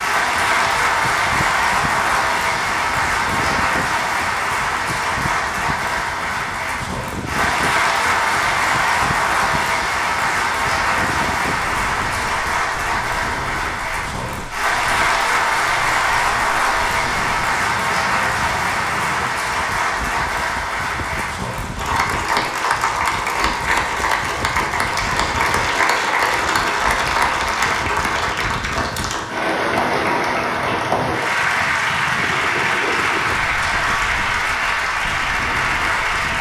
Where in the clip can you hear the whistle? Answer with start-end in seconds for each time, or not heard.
not heard.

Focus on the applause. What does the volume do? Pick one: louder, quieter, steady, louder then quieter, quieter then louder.
steady.